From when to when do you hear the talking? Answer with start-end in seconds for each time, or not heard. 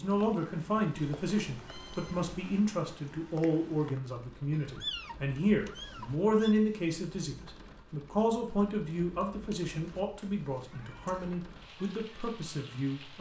0.0-13.1.